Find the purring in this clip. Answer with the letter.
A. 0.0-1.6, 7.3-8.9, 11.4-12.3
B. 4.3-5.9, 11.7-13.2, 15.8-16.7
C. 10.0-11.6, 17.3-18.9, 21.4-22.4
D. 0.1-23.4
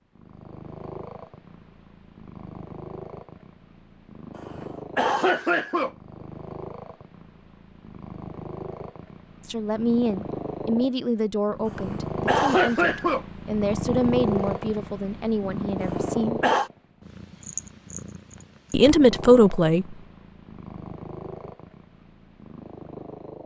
D.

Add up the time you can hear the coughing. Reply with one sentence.
You can hear the coughing for 4 seconds altogether.